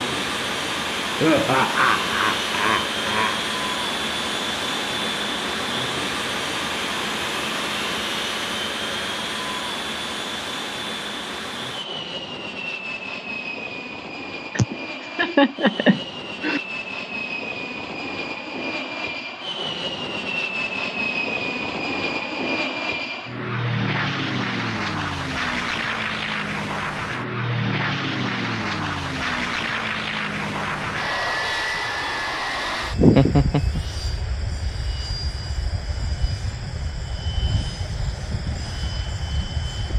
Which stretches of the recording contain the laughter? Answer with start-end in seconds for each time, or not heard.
1.2-3.4, 14.6-16.6, 33.0-33.8.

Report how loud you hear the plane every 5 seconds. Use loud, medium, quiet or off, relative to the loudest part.
loud, loud, medium, medium, loud, loud, loud, medium.